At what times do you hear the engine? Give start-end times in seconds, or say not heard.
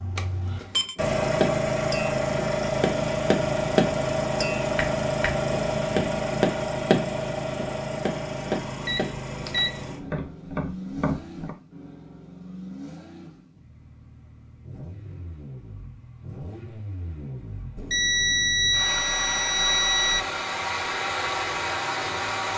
0.0-22.5.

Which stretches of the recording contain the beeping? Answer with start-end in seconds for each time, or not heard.
0.1-0.9, 8.8-9.8, 17.8-20.3.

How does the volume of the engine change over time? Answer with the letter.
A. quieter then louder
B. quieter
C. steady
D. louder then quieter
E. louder
A.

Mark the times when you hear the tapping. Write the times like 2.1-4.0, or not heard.
0.9-11.6.